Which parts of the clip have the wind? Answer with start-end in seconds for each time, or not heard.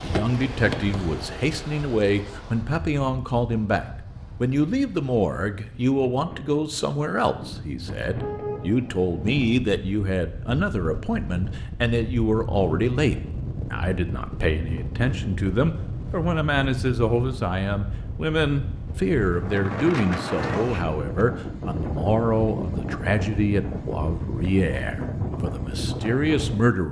0.0-26.8.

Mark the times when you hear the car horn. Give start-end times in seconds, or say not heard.
8.0-9.4.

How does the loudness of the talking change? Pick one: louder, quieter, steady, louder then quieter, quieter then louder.
steady.